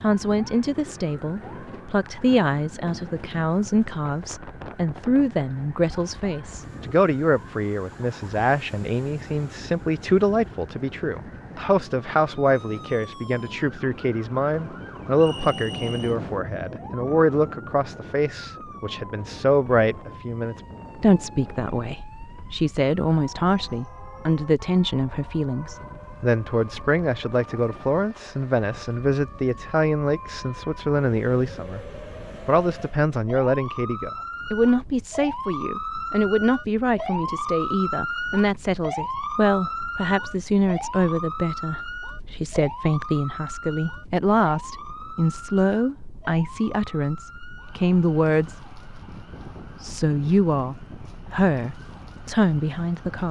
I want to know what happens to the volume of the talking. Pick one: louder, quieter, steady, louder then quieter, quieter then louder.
steady.